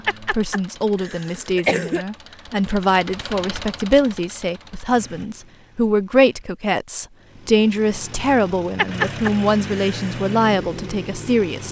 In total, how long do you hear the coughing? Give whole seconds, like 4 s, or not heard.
3 s.